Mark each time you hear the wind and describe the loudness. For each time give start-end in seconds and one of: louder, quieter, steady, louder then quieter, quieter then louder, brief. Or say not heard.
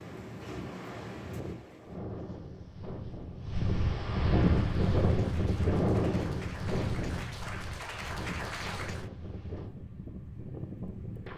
0.0-11.3 louder then quieter.